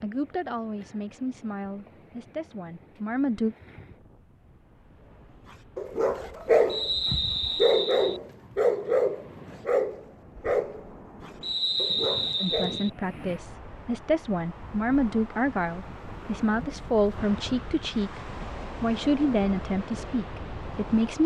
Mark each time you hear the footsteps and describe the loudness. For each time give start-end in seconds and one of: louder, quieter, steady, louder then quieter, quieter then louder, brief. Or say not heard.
not heard.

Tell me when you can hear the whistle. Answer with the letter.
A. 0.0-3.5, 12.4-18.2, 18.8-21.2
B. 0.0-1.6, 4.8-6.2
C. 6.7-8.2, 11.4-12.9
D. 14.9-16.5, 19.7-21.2
C.